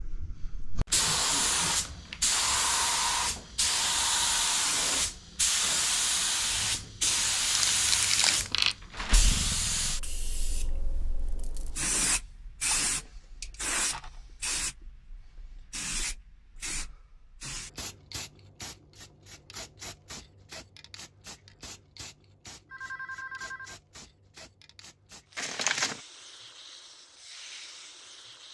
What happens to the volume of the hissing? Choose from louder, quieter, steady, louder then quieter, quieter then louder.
quieter.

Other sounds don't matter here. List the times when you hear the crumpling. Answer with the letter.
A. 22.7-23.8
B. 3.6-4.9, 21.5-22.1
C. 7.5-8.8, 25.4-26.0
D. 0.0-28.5
C.